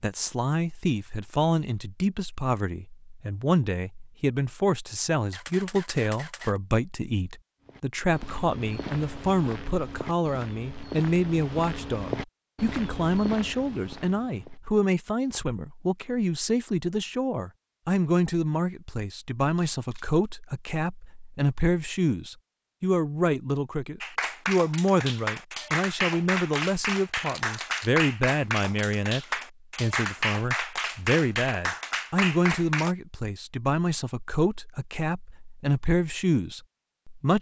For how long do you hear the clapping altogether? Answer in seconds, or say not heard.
9 s.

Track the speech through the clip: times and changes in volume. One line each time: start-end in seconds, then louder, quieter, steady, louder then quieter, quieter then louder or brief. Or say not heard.
0.0-37.3 steady.